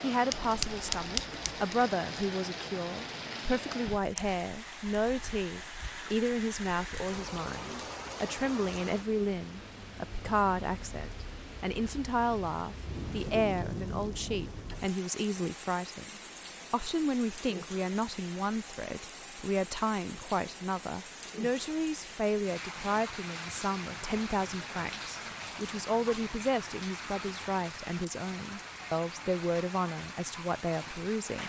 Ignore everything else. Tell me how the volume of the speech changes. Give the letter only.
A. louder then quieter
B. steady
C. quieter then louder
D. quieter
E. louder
B.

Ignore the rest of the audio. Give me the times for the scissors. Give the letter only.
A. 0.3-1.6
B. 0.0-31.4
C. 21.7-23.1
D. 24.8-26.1
A.